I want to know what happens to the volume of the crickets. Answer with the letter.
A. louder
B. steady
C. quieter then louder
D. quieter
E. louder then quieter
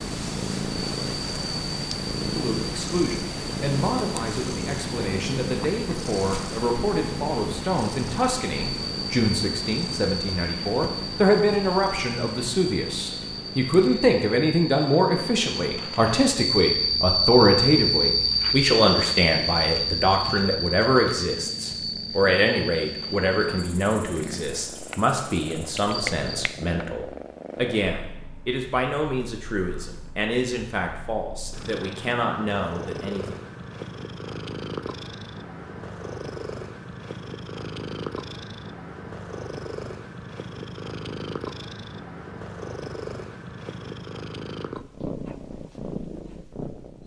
E.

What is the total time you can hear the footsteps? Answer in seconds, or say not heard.
not heard.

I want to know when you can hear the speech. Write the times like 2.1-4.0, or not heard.
2.4-33.4.